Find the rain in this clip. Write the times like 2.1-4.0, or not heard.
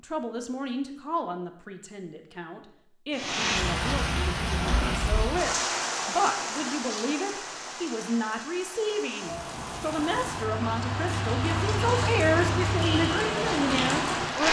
3.1-14.4.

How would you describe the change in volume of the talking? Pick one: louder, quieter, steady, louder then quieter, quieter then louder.
louder.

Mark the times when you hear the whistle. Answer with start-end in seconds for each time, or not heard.
not heard.